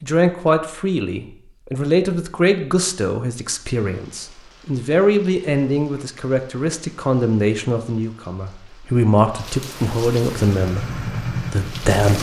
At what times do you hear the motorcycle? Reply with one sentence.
You can hear the motorcycle from 10.4 to 12.1 s.